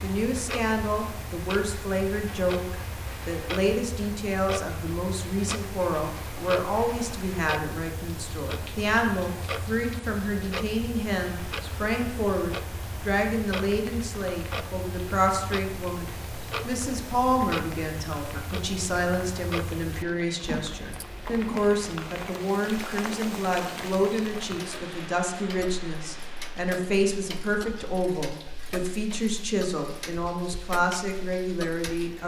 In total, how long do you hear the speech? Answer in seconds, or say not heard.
32 s.